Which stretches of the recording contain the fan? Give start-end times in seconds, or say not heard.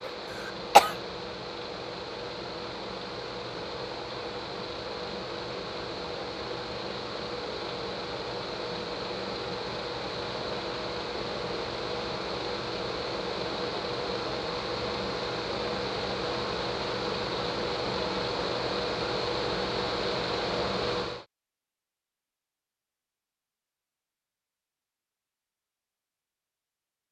0.0-21.2.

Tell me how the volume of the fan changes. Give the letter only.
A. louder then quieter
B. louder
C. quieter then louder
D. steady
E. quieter
B.